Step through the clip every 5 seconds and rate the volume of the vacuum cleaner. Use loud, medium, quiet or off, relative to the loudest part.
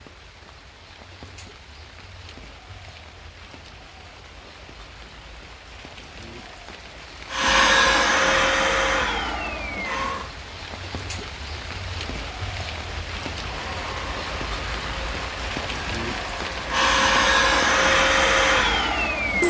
off, loud, quiet, loud.